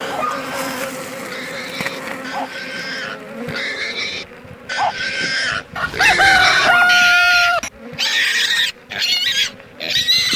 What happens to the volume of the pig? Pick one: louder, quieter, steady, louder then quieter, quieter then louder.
louder.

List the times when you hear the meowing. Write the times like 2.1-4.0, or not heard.
not heard.